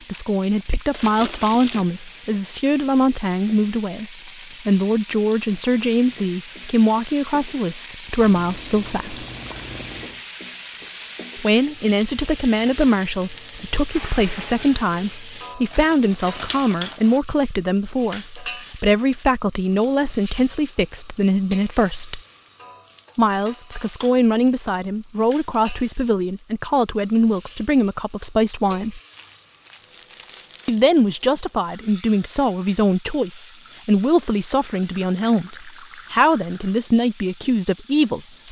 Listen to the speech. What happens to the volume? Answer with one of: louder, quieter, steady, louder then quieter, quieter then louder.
steady.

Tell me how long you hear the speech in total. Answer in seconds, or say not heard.
34 s.